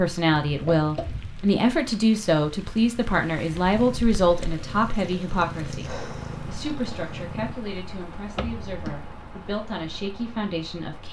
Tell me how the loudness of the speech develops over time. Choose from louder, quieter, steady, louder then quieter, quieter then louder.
quieter.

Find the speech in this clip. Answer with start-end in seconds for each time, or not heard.
0.0-11.0.